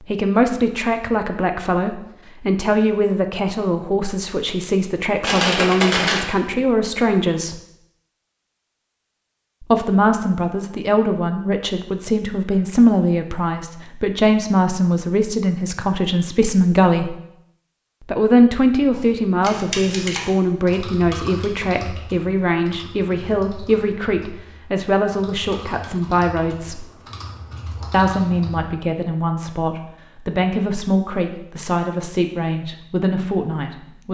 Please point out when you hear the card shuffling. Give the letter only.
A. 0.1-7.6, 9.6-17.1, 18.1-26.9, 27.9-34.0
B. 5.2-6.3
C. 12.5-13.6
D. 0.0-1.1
B.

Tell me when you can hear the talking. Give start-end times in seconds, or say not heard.
0.1-7.6, 9.6-17.1, 18.1-26.9, 27.9-34.0.